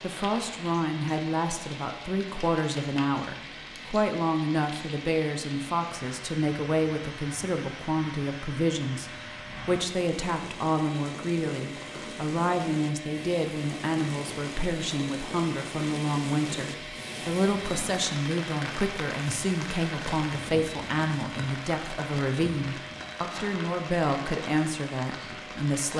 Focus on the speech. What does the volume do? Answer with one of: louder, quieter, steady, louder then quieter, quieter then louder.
steady.